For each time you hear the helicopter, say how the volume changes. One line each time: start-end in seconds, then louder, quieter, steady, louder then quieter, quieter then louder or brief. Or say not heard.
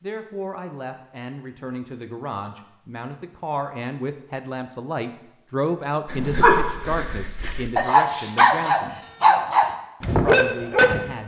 not heard.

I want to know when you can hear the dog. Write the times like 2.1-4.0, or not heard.
6.0-11.1.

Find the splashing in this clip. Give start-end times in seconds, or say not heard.
not heard.